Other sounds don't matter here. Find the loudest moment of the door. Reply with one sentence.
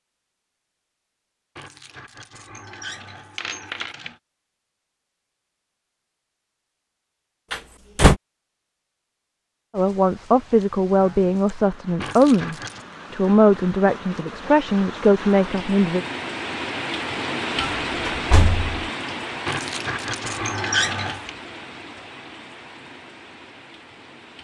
The volume of the door peaks at 8 seconds.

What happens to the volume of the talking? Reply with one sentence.
The volume of the talking stays about the same.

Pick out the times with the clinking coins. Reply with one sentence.
You can hear the clinking coins from 1.6 to 4.2 s, from 12.0 to 12.8 s and from 19.4 to 21.3 s.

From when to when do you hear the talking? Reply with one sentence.
You can hear the talking from 9.8 to 16.1 s.